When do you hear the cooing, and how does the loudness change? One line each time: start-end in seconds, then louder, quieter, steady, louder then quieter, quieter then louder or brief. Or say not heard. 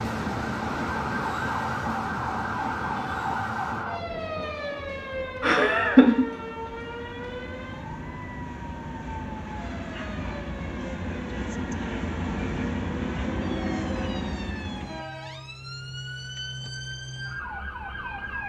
not heard.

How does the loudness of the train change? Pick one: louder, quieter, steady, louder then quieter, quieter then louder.
quieter then louder.